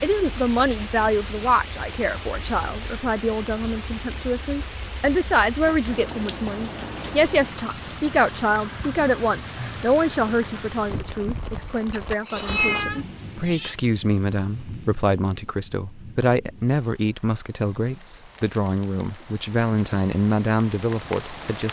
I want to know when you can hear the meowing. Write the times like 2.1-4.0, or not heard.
11.9-13.8.